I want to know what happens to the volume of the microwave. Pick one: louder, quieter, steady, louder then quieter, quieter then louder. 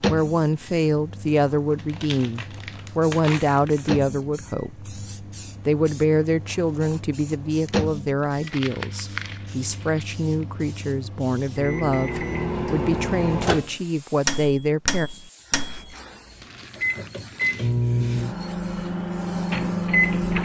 louder.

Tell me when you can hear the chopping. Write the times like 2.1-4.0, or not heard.
not heard.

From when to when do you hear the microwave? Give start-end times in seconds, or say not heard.
0.0-20.4.